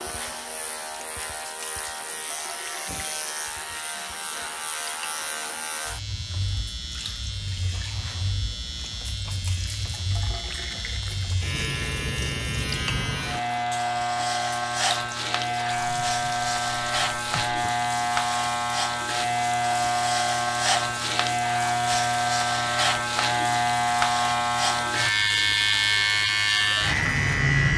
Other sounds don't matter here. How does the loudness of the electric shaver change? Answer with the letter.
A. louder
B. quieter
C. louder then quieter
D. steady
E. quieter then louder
A.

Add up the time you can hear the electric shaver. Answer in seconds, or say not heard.
28 s.